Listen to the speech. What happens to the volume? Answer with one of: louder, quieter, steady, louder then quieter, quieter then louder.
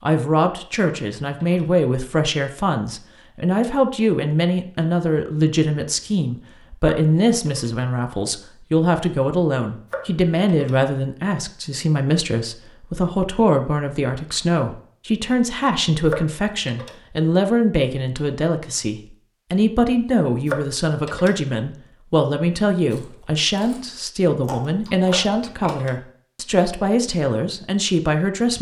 steady.